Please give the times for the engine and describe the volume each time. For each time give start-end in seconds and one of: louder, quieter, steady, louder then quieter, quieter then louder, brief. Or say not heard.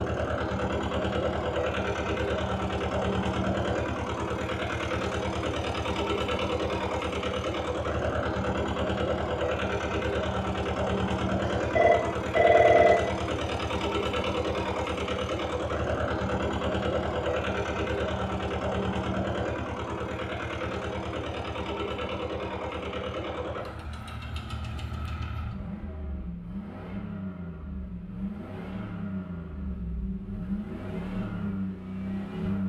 0.0-32.6 quieter.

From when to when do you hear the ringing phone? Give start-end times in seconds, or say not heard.
11.6-13.1.